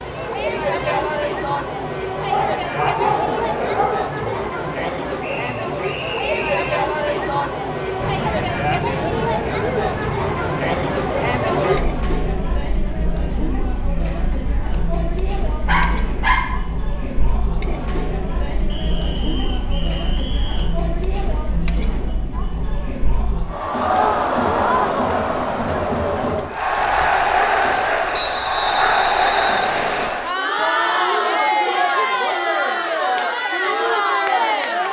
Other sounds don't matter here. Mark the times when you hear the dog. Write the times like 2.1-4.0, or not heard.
2.3-4.3, 15.7-16.4, 26.8-28.9.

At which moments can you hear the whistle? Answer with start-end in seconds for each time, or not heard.
5.2-6.7, 18.6-20.7, 28.1-30.1.